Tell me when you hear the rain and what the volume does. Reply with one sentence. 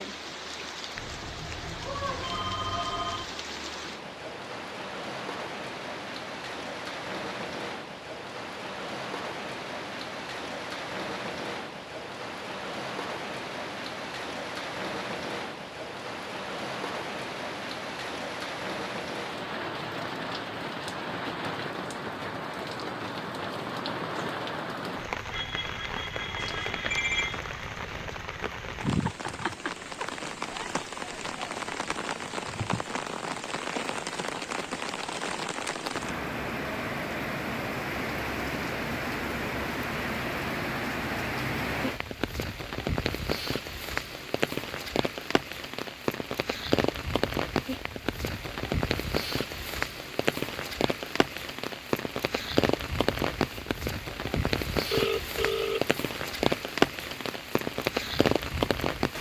You can hear the rain from 0.0 to 59.1 s, getting louder.